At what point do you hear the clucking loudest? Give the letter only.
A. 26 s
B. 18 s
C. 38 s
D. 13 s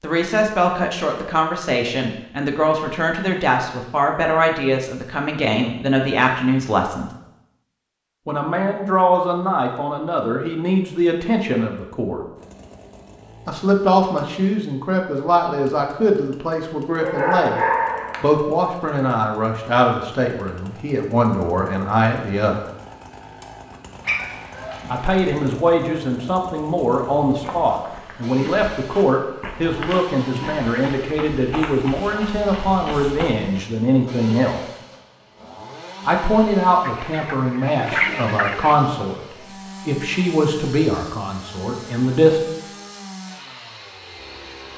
C.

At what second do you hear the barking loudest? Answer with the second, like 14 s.
18 s.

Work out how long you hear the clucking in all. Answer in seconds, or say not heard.
2 s.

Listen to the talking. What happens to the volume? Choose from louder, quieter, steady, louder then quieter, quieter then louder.
steady.